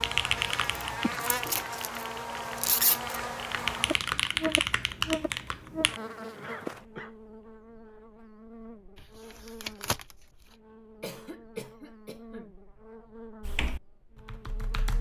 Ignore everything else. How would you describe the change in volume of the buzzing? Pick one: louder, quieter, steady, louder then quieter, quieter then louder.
quieter.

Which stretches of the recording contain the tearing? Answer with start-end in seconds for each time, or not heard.
0.6-3.1, 8.9-10.2.